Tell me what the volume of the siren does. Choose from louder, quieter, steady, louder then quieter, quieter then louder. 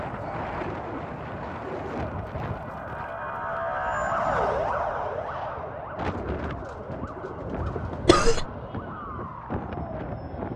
louder then quieter.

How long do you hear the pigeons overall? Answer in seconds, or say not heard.
4 s.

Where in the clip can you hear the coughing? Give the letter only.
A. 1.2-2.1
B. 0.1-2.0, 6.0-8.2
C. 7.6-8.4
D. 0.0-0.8
C.